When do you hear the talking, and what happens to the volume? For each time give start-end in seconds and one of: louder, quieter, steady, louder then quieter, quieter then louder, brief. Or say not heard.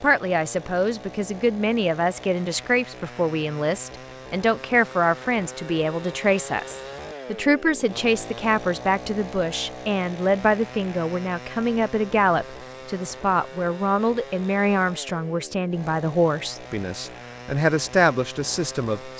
0.0-19.1 steady.